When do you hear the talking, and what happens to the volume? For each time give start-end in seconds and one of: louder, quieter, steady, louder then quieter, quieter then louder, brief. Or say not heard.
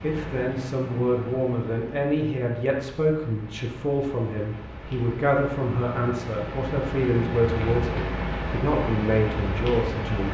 0.0-10.3 steady.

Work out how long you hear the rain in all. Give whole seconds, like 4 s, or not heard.
10 s.